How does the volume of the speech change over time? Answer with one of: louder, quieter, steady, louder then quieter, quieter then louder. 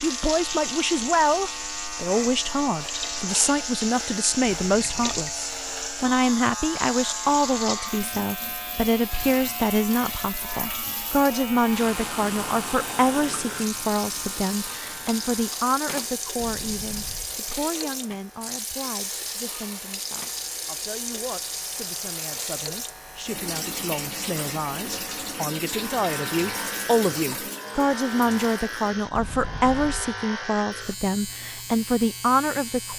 quieter then louder.